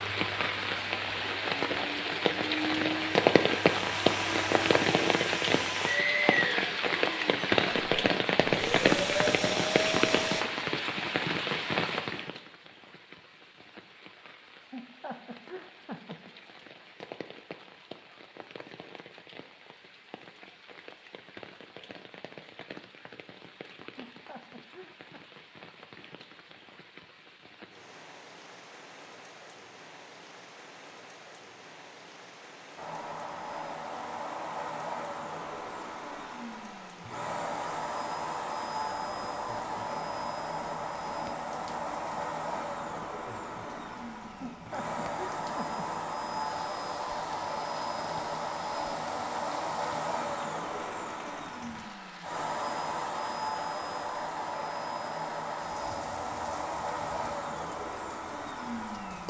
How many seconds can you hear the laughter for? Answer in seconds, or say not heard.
4 s.